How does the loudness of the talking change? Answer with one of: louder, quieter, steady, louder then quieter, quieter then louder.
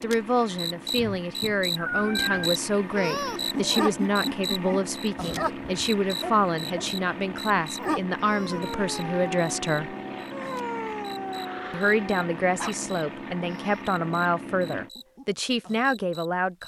steady.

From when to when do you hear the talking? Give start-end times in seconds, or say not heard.
0.0-9.9, 11.7-16.6.